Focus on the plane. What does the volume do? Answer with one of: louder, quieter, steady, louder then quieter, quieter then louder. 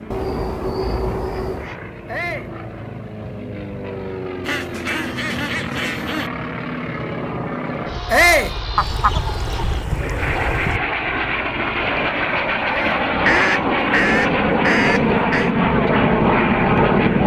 louder.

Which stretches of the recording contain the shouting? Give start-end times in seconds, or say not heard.
2.0-2.5, 8.1-8.6, 12.7-13.1.